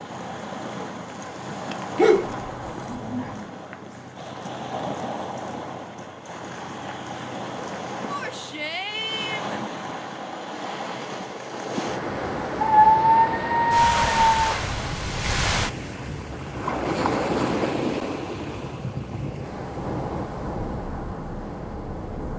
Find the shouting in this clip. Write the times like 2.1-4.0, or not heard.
8.1-9.6.